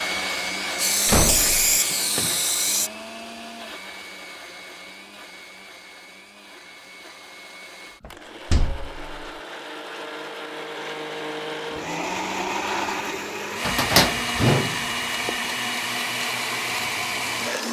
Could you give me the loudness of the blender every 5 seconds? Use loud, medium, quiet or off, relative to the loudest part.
medium, quiet, loud, loud.